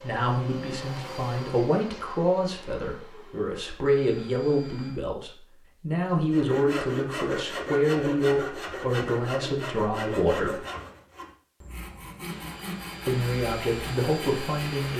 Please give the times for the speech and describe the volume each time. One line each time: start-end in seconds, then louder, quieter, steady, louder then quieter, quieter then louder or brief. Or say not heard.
0.0-10.7 steady
13.1-14.9 brief.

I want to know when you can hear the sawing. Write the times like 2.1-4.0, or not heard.
6.3-14.9.